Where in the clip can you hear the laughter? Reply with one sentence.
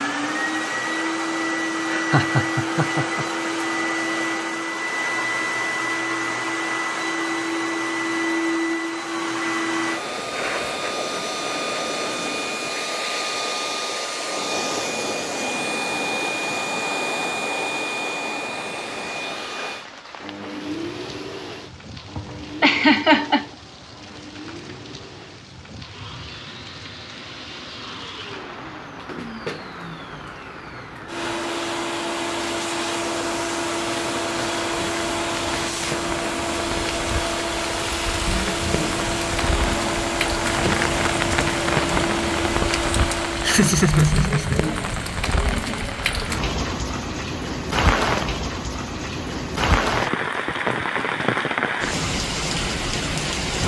The laughter can be heard from 1.9 to 3.2 s, from 22.1 to 23.4 s and from 43.4 to 44.6 s.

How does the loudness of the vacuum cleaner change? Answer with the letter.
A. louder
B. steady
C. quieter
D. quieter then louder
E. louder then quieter
D.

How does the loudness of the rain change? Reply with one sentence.
The volume of the rain goes up.